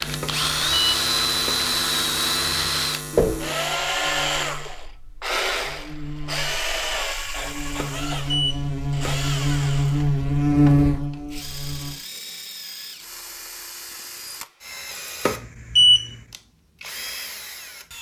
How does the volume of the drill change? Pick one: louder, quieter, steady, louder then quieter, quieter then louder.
quieter.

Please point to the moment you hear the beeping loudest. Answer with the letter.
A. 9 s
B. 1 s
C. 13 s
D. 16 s
D.